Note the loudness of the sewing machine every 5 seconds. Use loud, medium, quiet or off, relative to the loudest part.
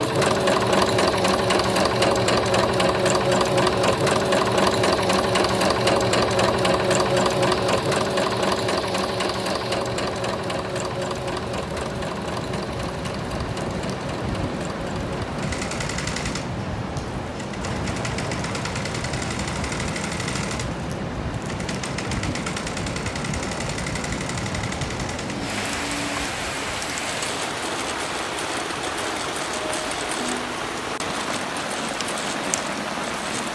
loud, loud, medium, quiet, quiet, quiet, quiet.